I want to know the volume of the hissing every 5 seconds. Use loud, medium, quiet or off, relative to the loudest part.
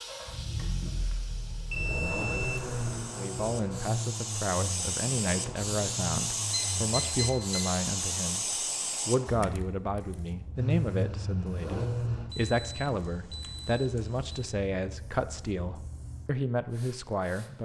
medium, loud, quiet, quiet.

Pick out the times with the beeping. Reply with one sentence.
The beeping can be heard from 1.7 to 2.7 s, from 6.5 to 7.8 s and from 12.3 to 14.6 s.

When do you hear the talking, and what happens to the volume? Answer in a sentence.
The talking can be heard from 3.0 to 17.6 s, at a steady volume.